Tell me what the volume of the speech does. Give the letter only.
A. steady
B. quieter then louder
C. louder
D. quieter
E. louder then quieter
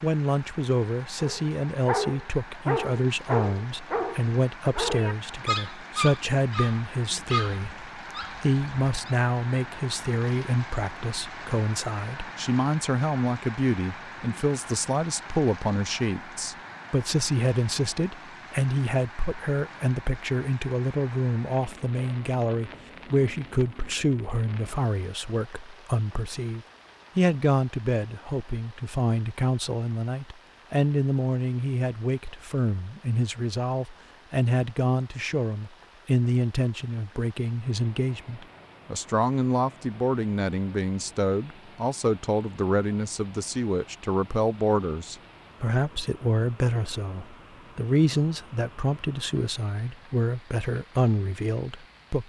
A.